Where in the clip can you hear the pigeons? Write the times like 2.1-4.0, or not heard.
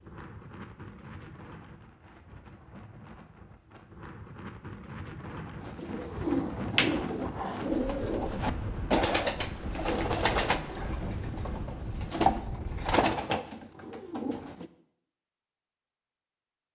5.6-14.7.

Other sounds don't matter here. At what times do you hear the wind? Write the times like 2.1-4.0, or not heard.
0.0-13.0.